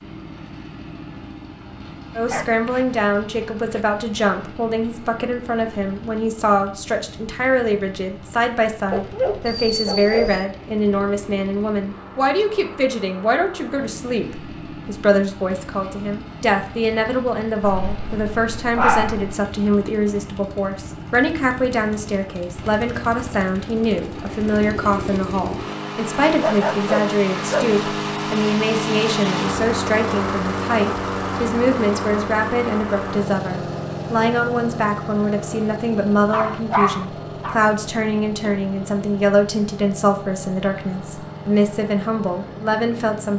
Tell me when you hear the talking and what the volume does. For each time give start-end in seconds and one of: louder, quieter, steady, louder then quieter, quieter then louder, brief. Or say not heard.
2.1-43.3 steady.